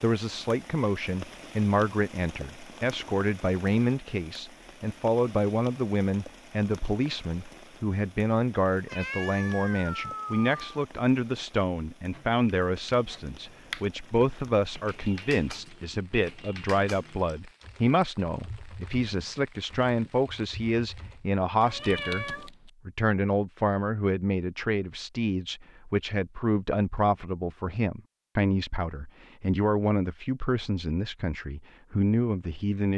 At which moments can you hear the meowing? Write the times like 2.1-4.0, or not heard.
8.8-10.6, 21.6-22.5.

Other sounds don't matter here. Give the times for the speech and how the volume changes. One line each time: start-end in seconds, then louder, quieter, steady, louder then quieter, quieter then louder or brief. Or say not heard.
0.0-32.9 steady.